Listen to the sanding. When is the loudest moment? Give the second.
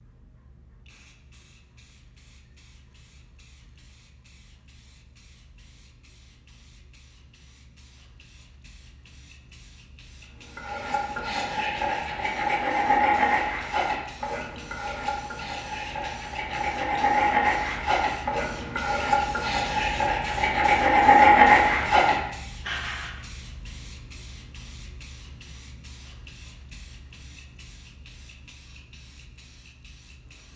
21 s.